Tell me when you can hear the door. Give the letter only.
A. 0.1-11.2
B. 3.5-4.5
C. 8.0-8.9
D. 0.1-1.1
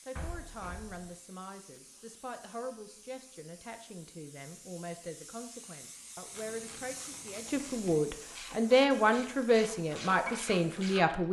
D.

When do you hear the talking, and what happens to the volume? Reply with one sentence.
You can hear the talking from 0.1 to 11.2 s, getting louder.